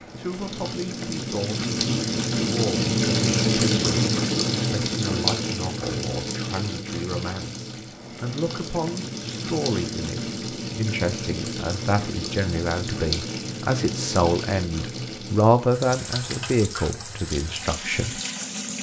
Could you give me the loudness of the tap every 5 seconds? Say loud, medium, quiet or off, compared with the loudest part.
loud, medium, medium, medium.